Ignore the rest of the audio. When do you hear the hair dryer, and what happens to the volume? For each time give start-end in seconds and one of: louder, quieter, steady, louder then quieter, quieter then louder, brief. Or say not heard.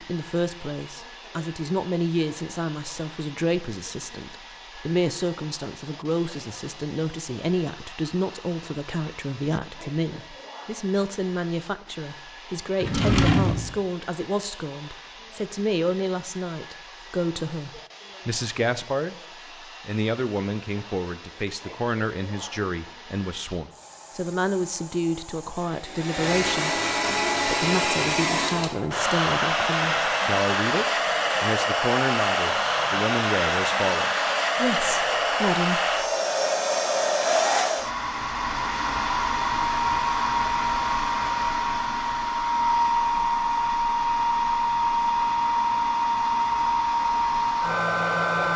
0.0-48.5 louder.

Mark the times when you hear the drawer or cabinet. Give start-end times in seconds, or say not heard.
12.8-13.8.